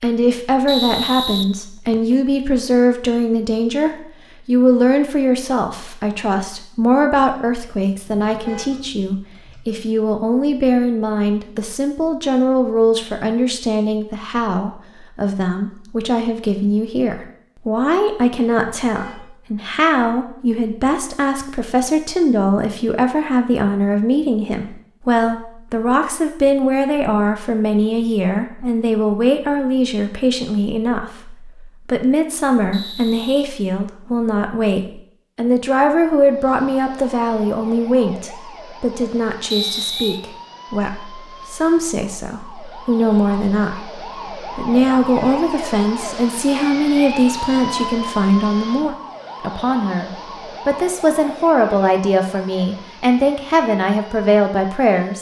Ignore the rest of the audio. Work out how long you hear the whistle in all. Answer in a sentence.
The whistle can be heard for 3 seconds in total.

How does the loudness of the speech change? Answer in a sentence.
The loudness of the speech stays about the same.